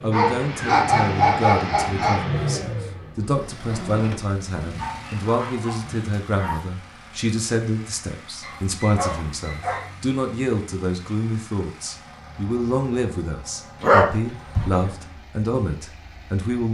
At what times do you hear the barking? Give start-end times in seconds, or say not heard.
0.1-2.2, 4.8-6.6, 8.4-9.9, 13.8-14.9.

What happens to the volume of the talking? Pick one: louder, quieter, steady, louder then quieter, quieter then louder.
steady.